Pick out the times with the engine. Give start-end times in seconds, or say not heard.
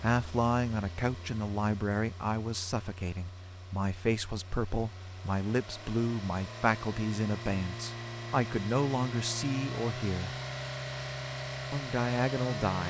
0.0-12.8.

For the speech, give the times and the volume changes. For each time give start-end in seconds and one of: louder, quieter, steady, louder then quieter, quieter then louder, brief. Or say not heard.
0.0-10.3 steady
11.7-12.8 brief.